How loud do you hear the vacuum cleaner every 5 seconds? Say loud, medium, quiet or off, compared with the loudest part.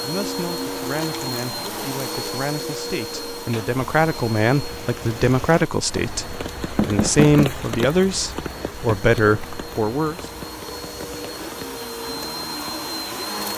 loud, medium, loud.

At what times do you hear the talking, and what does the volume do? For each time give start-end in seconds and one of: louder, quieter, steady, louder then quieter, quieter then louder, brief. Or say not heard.
0.0-10.2 louder.